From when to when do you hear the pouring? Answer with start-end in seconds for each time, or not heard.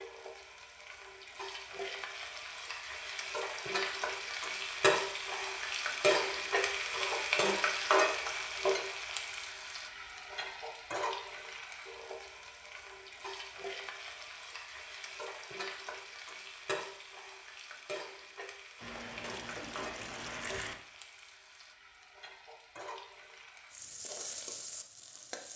18.8-20.8.